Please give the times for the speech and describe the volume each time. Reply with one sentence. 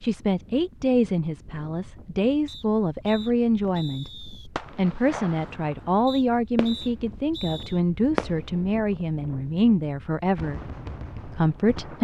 The speech can be heard from 0.0 to 12.0 s, at a steady volume.